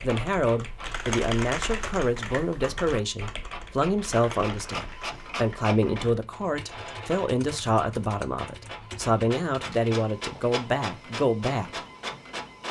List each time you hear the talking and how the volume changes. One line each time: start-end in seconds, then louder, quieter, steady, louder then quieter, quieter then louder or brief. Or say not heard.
0.0-11.8 steady.